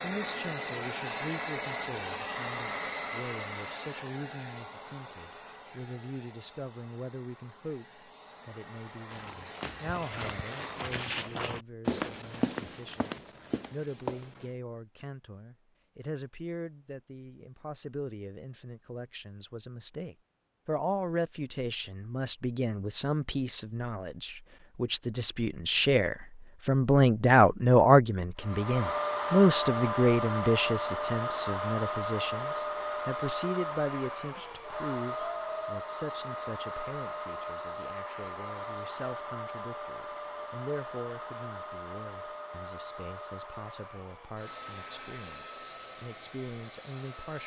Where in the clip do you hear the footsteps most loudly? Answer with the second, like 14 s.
12 s.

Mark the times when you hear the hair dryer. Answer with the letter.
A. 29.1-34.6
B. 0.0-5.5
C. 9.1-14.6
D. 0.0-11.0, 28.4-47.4
D.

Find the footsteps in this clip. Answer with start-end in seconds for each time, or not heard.
9.1-14.6.